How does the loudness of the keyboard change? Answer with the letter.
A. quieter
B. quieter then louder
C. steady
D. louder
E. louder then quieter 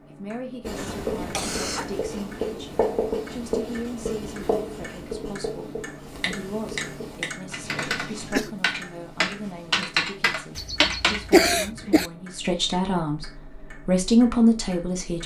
D.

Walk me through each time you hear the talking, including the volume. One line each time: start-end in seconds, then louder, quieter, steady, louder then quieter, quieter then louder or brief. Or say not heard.
0.1-15.2 louder.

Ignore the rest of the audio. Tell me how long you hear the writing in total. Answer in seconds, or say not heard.
8 s.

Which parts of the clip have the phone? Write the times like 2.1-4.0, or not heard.
not heard.